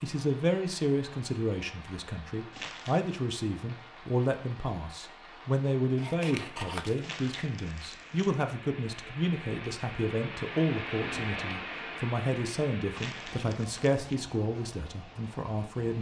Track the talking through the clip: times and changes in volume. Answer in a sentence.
The talking can be heard from 0.0 to 15.9 s, at a steady volume.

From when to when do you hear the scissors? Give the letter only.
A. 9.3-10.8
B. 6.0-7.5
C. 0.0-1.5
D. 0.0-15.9
B.